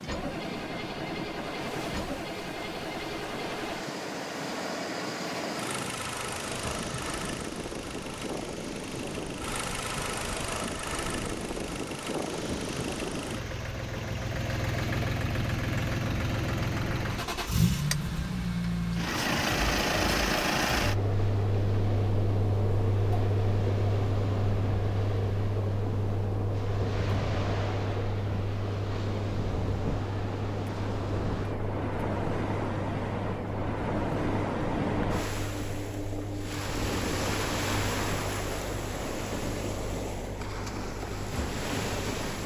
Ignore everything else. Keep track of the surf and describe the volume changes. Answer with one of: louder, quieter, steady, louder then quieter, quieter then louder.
louder.